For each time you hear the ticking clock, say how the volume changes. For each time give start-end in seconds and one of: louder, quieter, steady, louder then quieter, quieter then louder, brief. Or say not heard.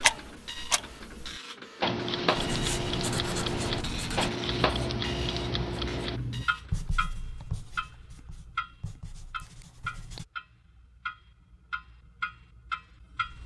0.0-13.4 quieter.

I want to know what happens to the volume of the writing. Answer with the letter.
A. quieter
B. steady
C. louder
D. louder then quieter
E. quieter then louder
A.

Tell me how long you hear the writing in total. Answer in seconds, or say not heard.
8 s.